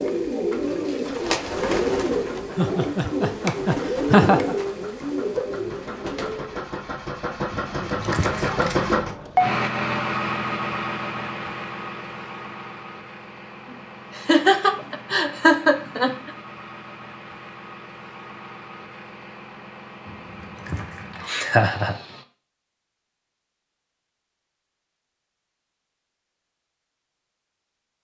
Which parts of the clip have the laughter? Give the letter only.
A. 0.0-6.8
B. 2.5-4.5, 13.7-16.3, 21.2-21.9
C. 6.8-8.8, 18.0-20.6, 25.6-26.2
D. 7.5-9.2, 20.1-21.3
B.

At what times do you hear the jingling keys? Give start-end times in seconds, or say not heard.
7.5-9.2, 20.1-21.3.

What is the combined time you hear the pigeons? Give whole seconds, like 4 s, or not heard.
7 s.